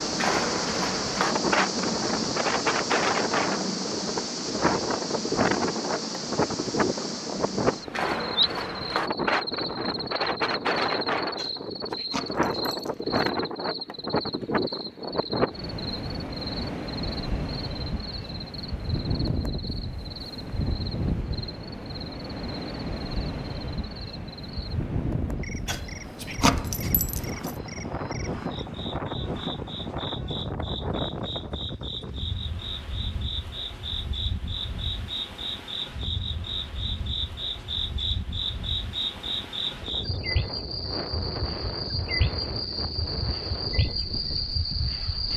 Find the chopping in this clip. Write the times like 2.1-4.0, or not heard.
not heard.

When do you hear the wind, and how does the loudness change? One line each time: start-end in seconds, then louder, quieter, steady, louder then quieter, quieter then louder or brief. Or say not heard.
0.0-45.3 quieter.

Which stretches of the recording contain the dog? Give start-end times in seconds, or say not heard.
11.3-13.3, 25.6-27.6.